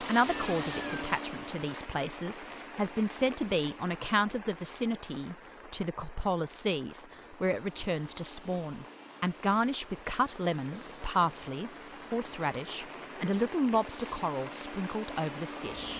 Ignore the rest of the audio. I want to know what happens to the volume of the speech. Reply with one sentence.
The volume of the speech stays about the same.